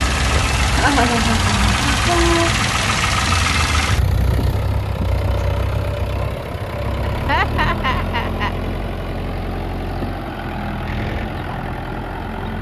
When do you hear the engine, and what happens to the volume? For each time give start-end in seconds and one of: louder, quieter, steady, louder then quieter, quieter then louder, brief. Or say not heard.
0.0-12.5 quieter.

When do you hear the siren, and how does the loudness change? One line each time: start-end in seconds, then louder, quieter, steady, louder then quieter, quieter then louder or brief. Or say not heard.
not heard.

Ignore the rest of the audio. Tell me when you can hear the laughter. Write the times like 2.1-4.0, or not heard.
0.7-2.5, 7.1-8.6.